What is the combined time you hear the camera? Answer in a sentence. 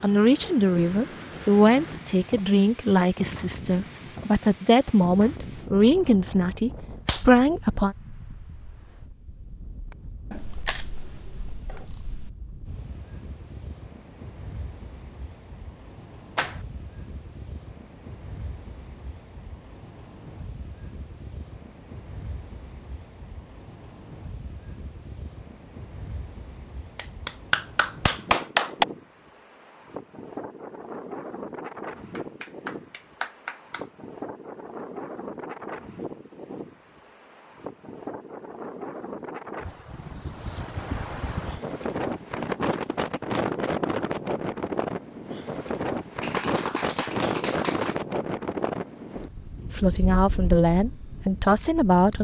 The camera can be heard for 2 seconds in total.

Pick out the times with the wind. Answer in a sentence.
The wind can be heard from 0.0 to 52.1 s.